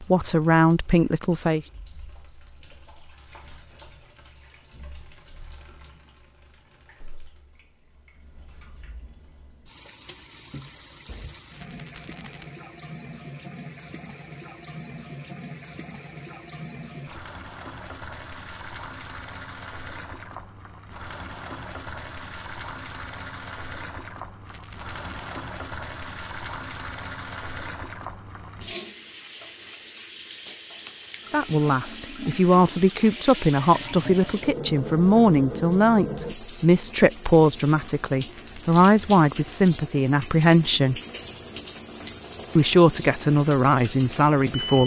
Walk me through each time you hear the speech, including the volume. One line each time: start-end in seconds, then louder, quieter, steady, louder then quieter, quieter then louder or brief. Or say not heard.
0.0-1.6 brief
31.3-41.0 steady
42.5-44.8 brief.